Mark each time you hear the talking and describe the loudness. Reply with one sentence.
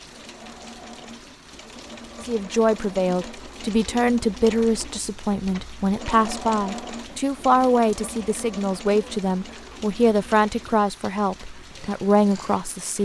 The talking can be heard from 2.2 to 13.0 s, at a steady volume.